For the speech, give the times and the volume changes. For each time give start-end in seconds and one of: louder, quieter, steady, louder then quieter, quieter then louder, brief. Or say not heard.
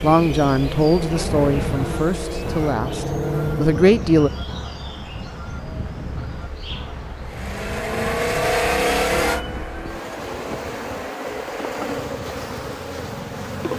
0.0-4.3 quieter then louder.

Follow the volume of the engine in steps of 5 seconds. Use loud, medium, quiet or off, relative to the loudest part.
medium, loud, quiet.